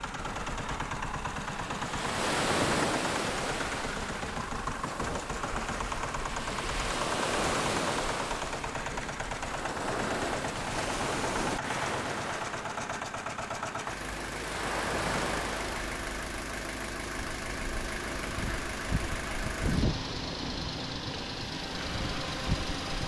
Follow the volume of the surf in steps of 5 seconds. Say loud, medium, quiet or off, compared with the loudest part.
loud, loud, loud, loud, medium.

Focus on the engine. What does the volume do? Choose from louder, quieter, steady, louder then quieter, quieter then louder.
steady.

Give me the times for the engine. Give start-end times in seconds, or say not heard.
0.0-23.0.